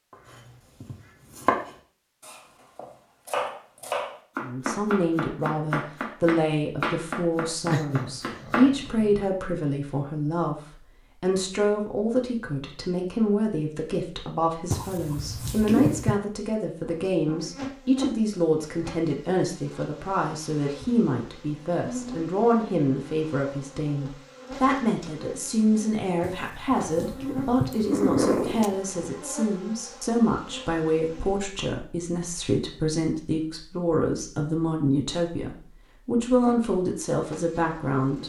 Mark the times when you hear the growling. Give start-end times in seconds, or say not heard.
7.7-9.3, 14.7-16.1, 26.2-28.7.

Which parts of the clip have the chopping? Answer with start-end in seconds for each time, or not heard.
0.1-8.9.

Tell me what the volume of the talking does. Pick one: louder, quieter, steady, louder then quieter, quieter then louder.
steady.